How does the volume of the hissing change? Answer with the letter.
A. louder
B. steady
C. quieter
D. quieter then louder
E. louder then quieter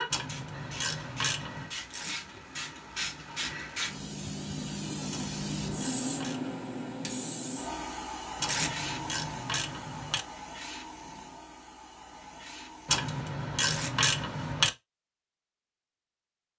E.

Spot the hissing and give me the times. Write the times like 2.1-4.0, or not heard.
0.0-13.1.